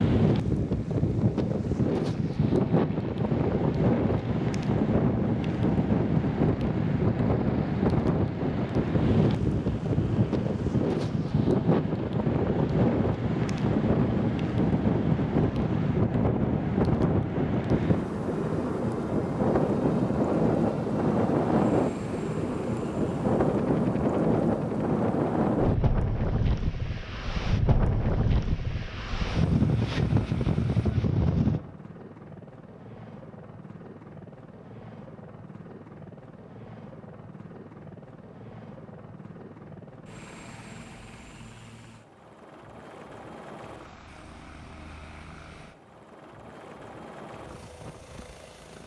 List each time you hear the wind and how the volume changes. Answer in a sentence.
The wind can be heard from 0.0 to 31.6 s, at a steady volume.